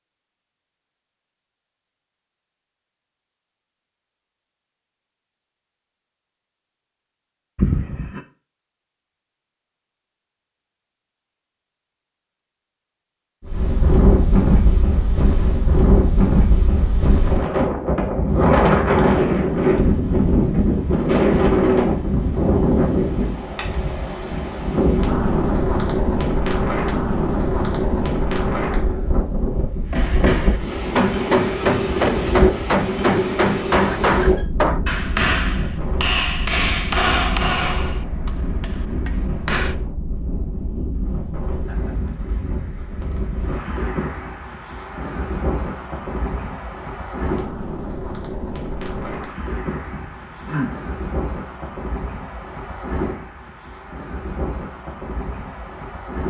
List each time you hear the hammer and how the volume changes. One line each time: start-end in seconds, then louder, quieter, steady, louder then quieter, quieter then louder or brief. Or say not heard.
29.9-39.8 quieter.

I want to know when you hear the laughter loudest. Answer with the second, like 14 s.
8 s.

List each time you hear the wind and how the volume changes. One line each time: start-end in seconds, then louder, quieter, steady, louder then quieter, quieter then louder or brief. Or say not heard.
13.4-56.2 quieter.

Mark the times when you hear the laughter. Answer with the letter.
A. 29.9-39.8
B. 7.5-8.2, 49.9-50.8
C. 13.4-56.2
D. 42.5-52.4
B.